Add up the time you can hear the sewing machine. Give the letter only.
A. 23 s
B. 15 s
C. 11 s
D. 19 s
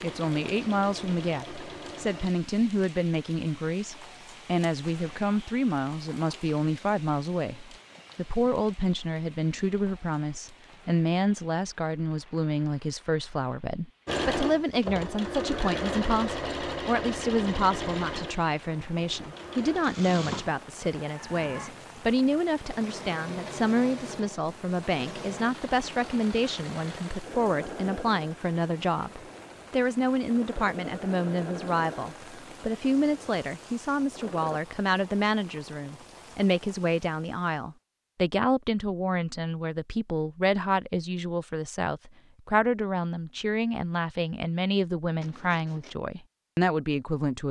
A.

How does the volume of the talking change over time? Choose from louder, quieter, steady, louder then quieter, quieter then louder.
steady.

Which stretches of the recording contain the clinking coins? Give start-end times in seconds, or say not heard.
not heard.